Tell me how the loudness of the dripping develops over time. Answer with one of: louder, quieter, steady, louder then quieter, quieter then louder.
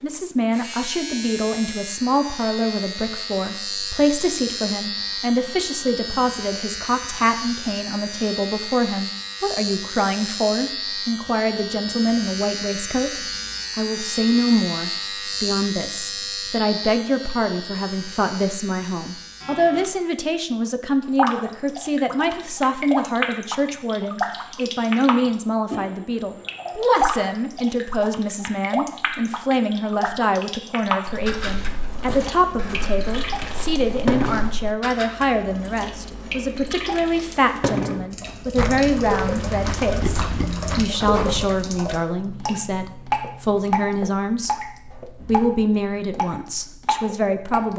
steady.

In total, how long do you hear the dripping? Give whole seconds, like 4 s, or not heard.
27 s.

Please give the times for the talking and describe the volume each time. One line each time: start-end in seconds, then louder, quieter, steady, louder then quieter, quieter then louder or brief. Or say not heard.
0.0-47.7 steady.